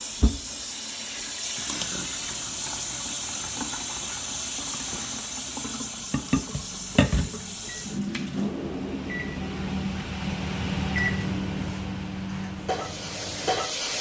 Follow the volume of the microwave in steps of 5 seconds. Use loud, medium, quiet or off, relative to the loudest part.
off, medium, loud.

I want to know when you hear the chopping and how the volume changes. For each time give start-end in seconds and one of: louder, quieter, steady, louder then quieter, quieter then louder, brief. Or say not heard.
not heard.